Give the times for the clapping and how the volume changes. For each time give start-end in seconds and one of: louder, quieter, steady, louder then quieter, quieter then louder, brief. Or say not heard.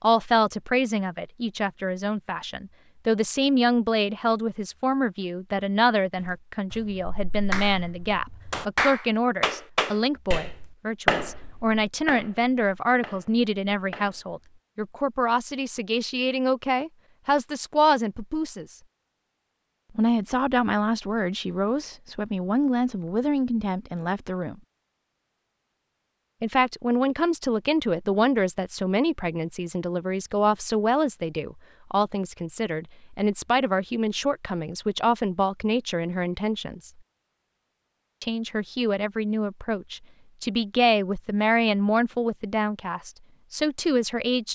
6.2-14.4 louder then quieter.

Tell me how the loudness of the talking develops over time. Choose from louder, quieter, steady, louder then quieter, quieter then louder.
steady.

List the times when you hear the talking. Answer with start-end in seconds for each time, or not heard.
0.0-18.8, 19.9-24.6, 26.4-36.9, 38.2-44.5.